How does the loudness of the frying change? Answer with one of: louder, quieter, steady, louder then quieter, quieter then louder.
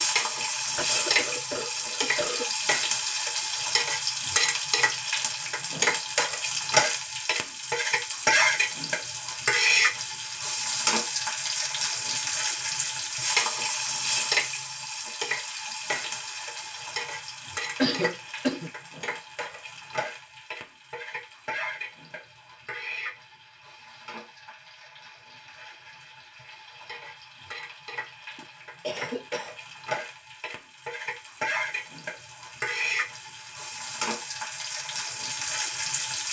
quieter then louder.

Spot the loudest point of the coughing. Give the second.
18 s.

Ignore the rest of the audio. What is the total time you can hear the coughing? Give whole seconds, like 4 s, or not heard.
4 s.